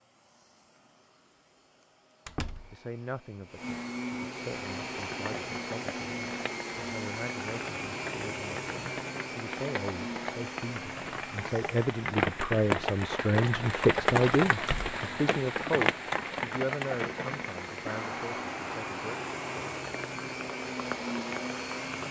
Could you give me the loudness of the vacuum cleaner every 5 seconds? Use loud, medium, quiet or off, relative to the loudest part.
medium, loud, medium, medium, loud.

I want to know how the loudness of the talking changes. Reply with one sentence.
The volume of the talking goes up, then down.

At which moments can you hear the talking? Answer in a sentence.
You can hear the talking from 2.7 to 19.1 s.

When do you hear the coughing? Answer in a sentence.
You can't hear the coughing here.